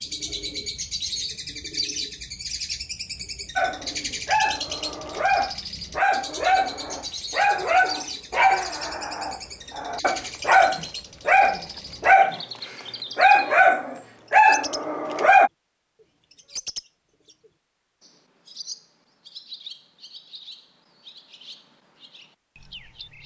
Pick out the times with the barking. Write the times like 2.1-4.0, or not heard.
3.5-12.4, 13.2-15.5.